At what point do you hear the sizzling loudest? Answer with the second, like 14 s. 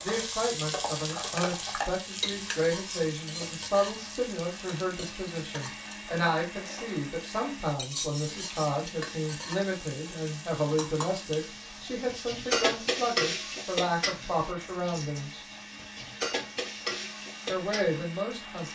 13 s.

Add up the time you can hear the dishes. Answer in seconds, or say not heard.
not heard.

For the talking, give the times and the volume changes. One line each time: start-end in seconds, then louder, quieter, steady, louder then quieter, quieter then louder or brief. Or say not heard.
0.0-15.4 steady
17.4-18.7 brief.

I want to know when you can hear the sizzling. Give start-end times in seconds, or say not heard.
0.0-18.7.